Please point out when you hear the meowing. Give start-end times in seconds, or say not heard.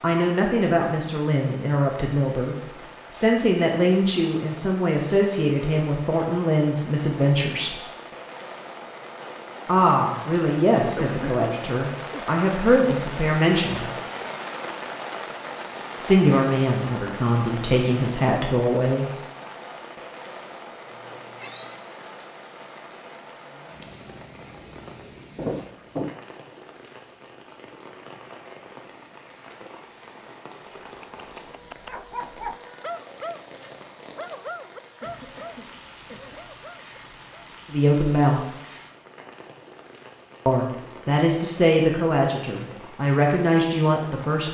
20.9-21.9.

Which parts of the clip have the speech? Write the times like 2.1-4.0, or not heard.
0.0-7.8, 9.7-13.9, 16.0-19.1, 37.7-38.5, 40.5-44.4.